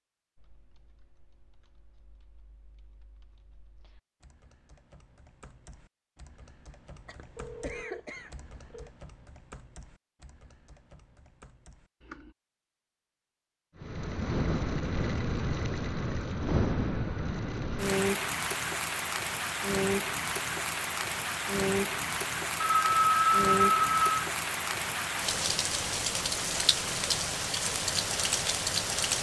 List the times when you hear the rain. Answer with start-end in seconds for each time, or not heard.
13.8-29.1.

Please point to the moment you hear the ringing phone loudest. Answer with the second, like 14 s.
23 s.